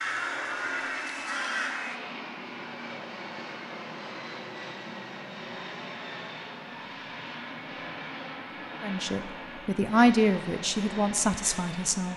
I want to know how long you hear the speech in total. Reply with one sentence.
The speech can be heard for 3 seconds in total.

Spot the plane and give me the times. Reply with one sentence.
You can hear the plane from 0.0 to 12.1 s.